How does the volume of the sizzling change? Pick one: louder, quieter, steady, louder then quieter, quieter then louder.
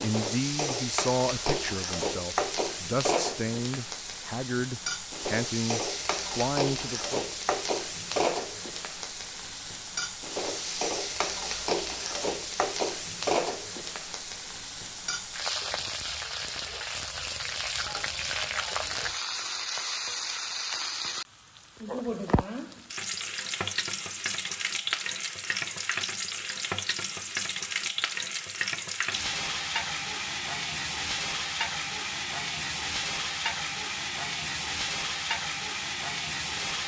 steady.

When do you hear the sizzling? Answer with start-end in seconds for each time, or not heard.
0.0-36.8.